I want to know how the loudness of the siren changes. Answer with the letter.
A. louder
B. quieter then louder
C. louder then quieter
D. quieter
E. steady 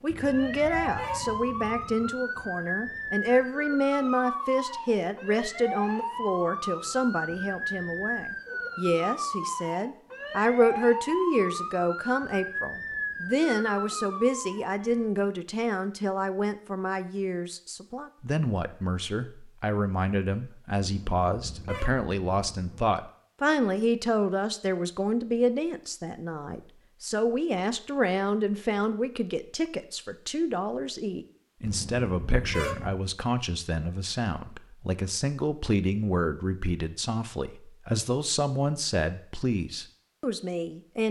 E.